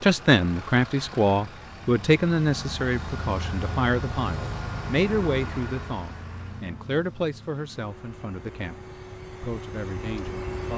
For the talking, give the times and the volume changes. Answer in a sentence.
You can hear the talking from 0.0 to 10.7 s, getting quieter.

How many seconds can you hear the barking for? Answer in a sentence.
The barking can't be heard in this clip.